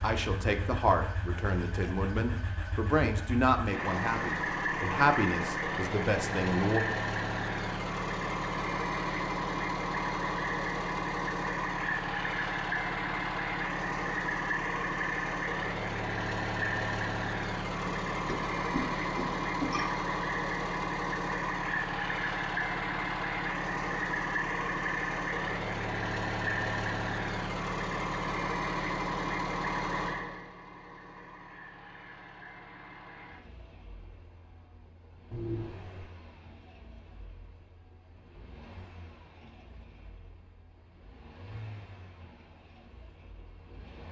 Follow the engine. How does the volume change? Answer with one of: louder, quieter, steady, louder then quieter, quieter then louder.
quieter.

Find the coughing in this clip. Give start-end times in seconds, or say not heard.
17.9-19.9, 35.3-36.1.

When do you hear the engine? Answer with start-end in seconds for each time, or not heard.
0.0-44.0.